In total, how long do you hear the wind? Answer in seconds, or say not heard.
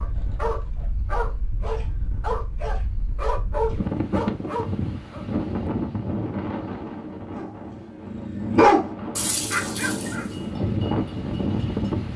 12 s.